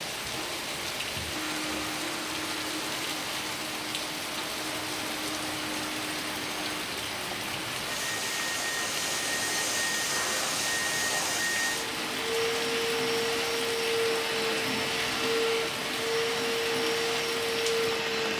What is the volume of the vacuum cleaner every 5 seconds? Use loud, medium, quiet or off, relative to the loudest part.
medium, medium, loud, loud.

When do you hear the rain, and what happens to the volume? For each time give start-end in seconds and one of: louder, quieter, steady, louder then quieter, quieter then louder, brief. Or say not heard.
0.0-18.3 steady.